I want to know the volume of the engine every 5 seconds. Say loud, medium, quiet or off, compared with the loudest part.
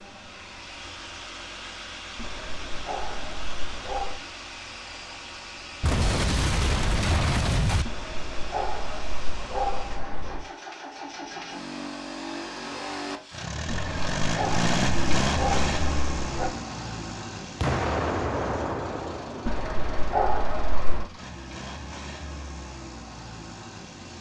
medium, medium, loud, loud, medium.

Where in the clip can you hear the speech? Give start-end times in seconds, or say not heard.
not heard.